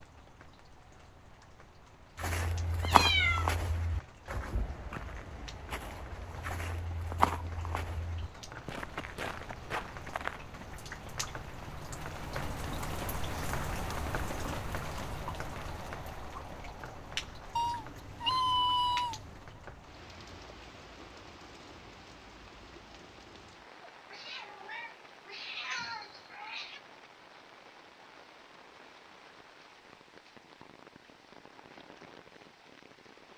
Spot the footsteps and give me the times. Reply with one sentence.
The footsteps can be heard from 2.1 to 10.7 s.